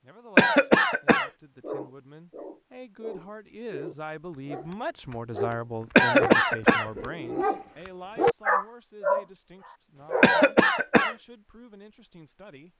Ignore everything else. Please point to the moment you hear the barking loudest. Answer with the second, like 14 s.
8 s.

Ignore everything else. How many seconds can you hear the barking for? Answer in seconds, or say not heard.
8 s.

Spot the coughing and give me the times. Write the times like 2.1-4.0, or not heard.
0.3-1.3, 6.0-6.8, 10.2-11.2.